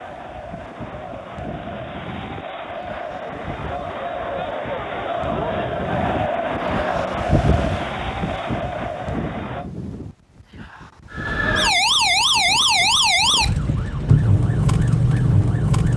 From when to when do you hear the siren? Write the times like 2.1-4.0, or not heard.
11.1-15.9.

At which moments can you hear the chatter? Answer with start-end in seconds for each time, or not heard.
0.0-9.7.